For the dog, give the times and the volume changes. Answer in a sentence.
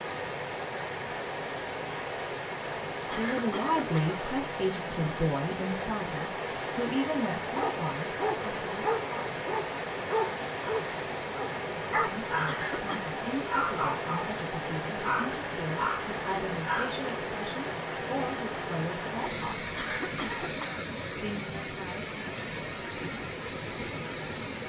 The dog can be heard from 7.5 to 12.6 s, at a steady volume; briefly from 13.5 to 14.3 s; and briefly from 15.0 to 16.9 s.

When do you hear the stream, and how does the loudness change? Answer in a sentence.
You can hear the stream from 0.0 to 24.6 s, at a steady volume.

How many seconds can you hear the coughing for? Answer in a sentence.
The coughing can be heard for 3 seconds in total.